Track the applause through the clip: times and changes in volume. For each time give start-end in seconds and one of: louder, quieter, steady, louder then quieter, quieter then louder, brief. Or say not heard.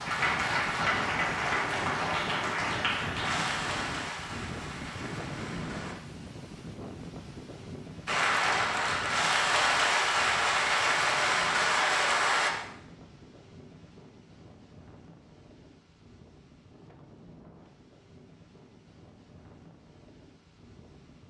0.0-6.0 quieter
8.1-12.5 steady.